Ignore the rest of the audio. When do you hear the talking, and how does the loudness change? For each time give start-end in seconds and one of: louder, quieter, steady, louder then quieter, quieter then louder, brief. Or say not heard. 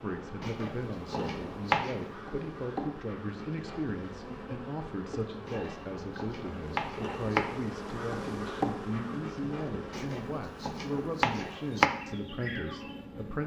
0.0-13.4 steady.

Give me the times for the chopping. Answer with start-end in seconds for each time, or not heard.
0.4-2.0, 5.5-7.4, 9.9-11.9.